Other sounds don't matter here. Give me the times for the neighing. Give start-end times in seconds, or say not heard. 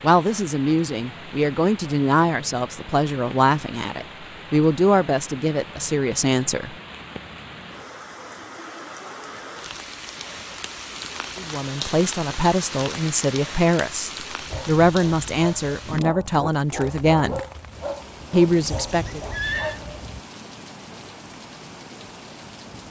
18.6-19.8.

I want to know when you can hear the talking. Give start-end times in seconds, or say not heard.
0.0-6.8, 11.3-17.4, 18.3-19.2.